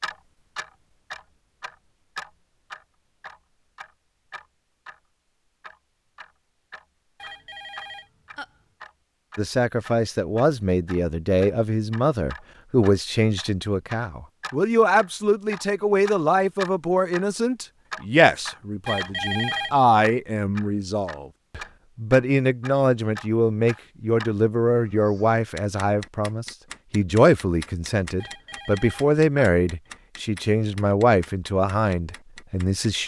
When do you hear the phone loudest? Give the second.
19 s.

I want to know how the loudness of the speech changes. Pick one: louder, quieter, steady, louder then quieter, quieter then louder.
steady.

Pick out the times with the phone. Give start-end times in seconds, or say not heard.
7.2-8.5, 18.9-19.8, 28.2-29.5.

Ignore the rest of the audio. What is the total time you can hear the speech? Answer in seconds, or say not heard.
24 s.